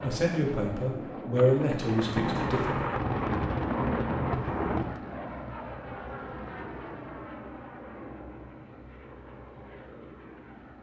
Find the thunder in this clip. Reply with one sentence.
The thunder can be heard from 1.4 to 5.0 s.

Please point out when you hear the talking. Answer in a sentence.
You can hear the talking from 0.0 to 2.8 s.